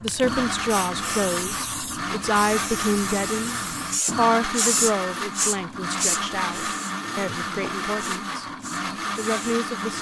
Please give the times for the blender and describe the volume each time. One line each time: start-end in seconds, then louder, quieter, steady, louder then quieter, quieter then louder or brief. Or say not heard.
0.0-9.9 steady.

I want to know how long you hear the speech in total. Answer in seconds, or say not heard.
9 s.